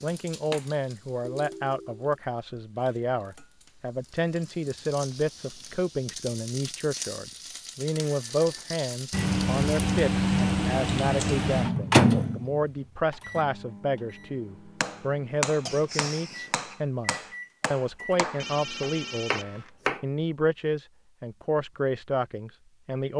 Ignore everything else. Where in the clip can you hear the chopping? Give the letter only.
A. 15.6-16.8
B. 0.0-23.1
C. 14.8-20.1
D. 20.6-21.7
C.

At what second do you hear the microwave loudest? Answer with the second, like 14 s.
12 s.